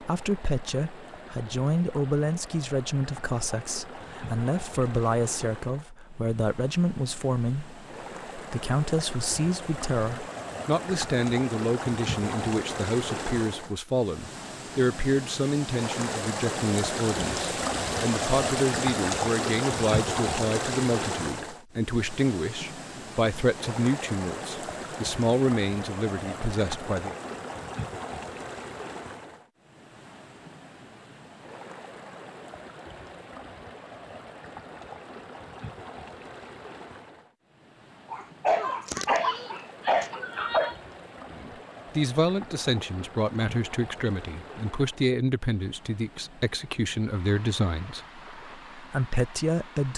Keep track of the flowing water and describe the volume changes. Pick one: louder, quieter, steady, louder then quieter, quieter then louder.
louder then quieter.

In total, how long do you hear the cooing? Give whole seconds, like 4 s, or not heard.
not heard.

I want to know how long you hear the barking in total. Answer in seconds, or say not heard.
3 s.